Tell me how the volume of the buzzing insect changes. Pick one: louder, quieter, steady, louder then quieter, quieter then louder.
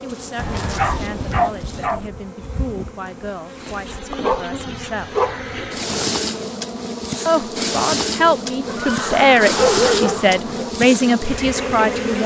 louder.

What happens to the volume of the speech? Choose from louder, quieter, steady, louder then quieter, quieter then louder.
louder.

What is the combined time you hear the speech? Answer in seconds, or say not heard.
10 s.